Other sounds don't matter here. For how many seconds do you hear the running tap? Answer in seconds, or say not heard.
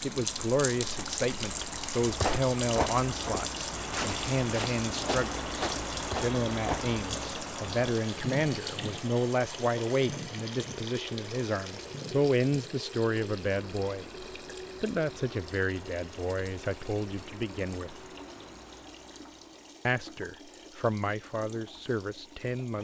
23 s.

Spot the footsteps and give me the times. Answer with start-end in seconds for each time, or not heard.
2.0-7.0.